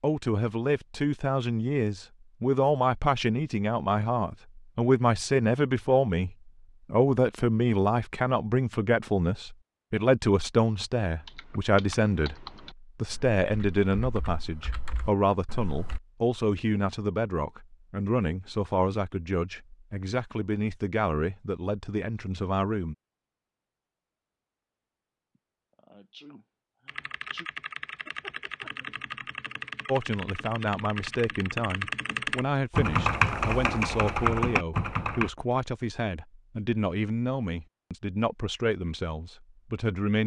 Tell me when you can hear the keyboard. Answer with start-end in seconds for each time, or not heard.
11.2-16.0, 26.9-35.3.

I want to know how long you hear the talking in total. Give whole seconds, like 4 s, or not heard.
33 s.